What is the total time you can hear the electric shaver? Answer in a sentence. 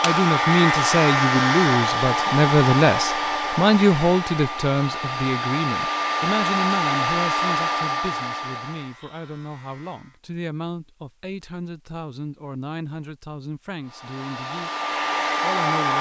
You can hear the electric shaver for 3 seconds altogether.